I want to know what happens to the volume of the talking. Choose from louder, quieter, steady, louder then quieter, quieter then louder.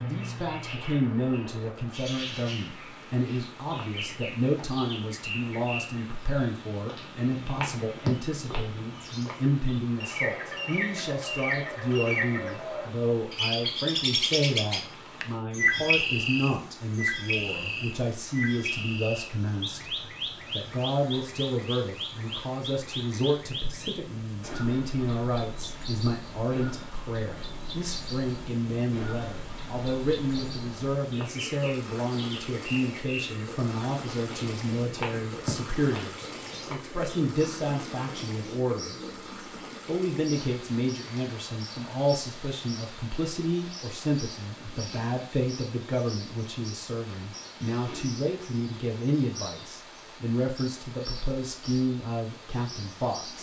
steady.